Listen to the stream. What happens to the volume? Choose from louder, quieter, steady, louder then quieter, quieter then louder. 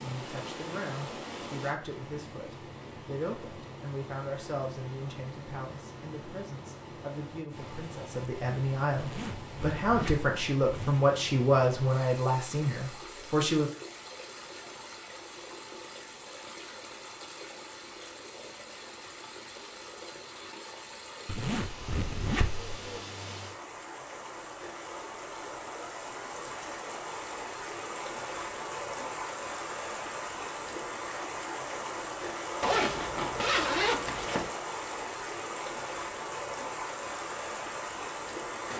louder.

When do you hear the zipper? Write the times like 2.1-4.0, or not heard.
8.9-11.1, 21.2-22.7, 32.6-34.5.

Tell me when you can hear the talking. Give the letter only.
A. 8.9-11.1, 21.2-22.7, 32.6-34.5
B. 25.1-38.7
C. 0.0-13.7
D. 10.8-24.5
C.